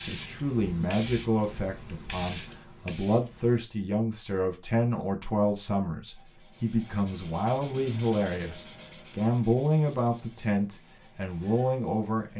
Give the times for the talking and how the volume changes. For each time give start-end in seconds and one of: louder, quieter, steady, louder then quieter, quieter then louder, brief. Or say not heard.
0.0-12.3 steady.